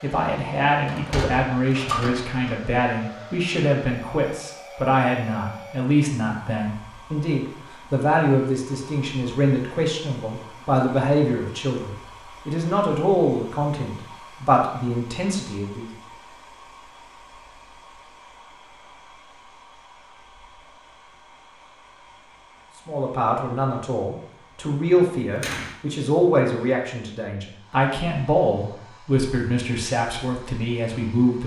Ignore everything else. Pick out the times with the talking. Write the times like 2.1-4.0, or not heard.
0.0-15.9, 22.9-31.4.